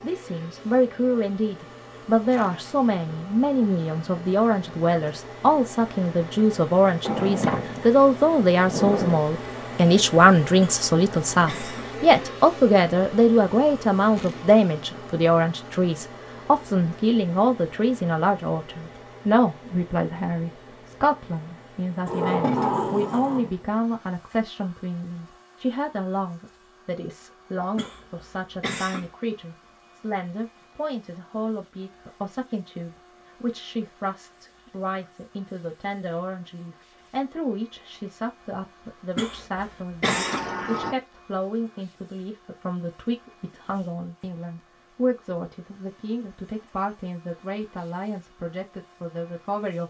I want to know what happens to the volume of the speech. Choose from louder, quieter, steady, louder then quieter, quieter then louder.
quieter.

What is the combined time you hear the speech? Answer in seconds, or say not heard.
50 s.